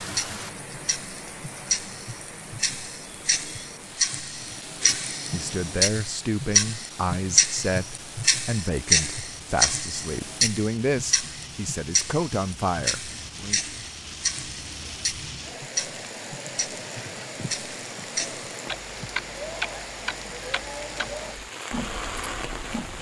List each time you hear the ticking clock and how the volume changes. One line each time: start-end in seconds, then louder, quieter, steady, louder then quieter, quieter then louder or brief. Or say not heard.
0.0-22.9 louder then quieter.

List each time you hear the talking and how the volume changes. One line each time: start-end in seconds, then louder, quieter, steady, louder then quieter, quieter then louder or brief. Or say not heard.
4.8-13.6 steady.